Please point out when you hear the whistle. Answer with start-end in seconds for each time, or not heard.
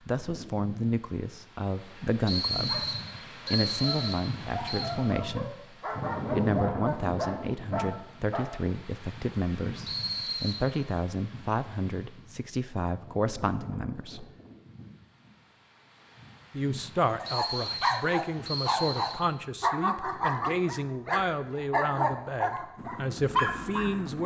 2.2-4.9, 9.8-10.7, 17.2-19.2.